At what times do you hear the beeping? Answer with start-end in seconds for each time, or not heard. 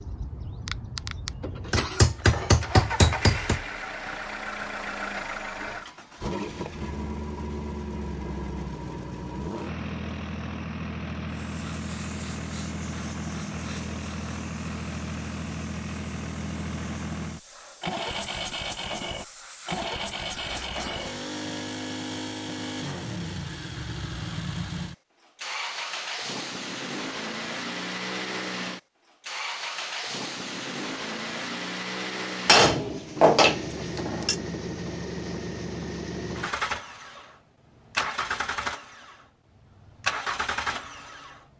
not heard.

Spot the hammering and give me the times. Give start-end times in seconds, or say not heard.
1.7-3.6, 32.5-34.4.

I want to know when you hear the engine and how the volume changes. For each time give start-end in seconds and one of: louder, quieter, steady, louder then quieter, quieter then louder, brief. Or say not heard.
0.0-41.5 steady.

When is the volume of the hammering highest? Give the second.
33 s.